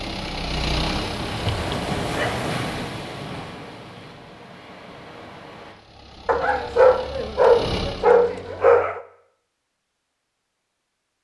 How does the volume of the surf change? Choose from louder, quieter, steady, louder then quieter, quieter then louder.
quieter.